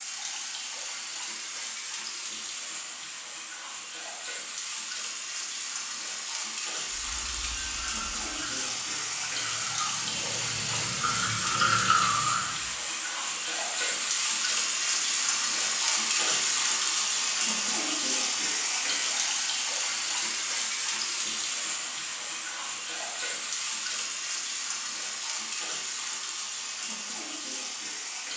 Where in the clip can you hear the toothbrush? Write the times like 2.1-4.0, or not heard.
6.9-12.7.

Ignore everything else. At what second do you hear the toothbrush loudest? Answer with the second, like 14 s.
12 s.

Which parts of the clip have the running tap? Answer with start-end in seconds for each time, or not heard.
0.0-28.3.